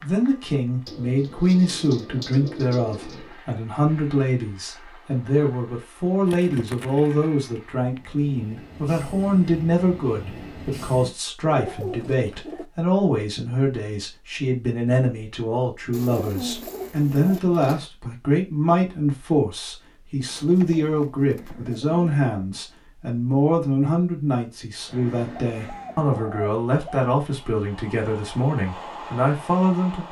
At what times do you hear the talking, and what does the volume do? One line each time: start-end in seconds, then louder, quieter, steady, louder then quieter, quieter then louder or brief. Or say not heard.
0.0-30.0 steady.